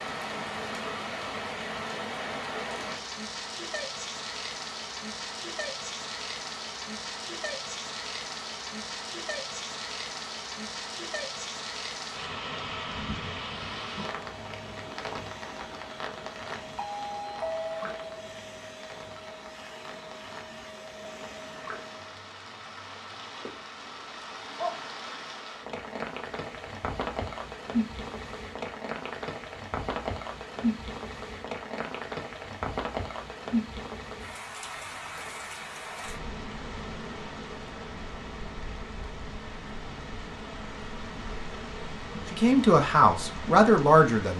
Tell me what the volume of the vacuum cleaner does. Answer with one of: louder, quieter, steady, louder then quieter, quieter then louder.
steady.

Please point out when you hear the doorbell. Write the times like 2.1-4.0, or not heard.
16.8-18.2.